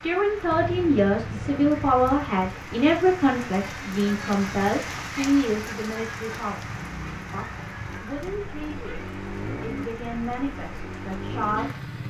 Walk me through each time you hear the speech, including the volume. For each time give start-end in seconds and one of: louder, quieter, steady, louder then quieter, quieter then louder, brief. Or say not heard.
0.0-11.8 quieter.